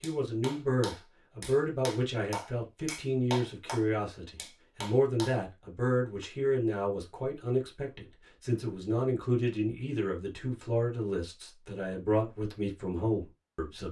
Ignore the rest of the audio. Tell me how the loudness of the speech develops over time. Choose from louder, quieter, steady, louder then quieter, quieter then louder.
steady.